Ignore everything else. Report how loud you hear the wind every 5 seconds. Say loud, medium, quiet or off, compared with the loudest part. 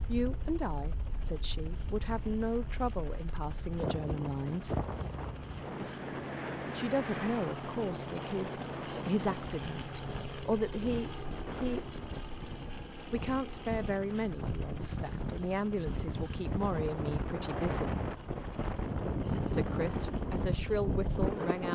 medium, medium, medium, loud, loud.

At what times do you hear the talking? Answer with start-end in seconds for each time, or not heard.
0.1-4.8, 6.8-11.9, 13.1-18.0, 19.4-21.7.